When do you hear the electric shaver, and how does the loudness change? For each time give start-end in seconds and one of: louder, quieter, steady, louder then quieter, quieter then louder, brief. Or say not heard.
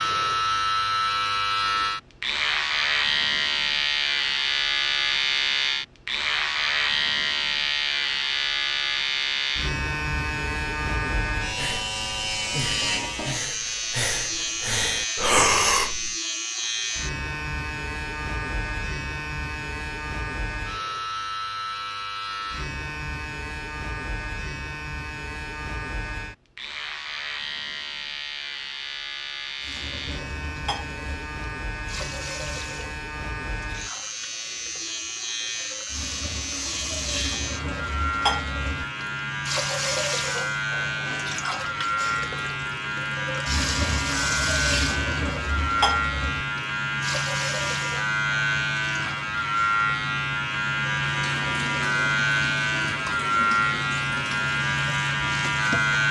0.0-56.0 quieter then louder.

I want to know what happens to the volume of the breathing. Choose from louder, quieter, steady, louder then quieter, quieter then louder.
louder.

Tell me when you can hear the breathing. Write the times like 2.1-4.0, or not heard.
11.4-16.1.